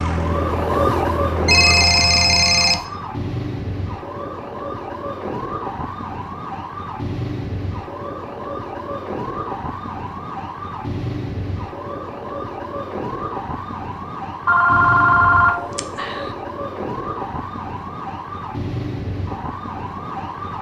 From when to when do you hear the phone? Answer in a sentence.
You can hear the phone from 1.4 to 2.8 s and from 14.4 to 16.3 s.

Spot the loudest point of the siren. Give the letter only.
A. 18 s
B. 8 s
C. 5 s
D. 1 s
D.